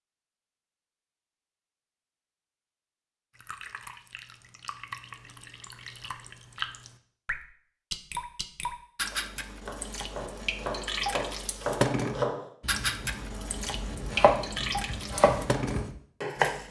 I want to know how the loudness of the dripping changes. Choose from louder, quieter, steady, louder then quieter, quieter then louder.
louder.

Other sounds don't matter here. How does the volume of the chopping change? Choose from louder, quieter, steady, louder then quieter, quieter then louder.
louder.